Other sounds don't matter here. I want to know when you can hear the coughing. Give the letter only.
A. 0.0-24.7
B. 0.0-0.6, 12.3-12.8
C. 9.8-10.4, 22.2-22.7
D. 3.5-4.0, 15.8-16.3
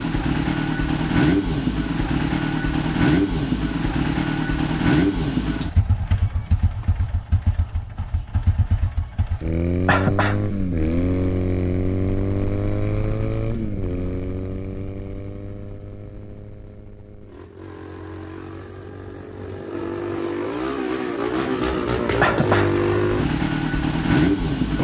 C.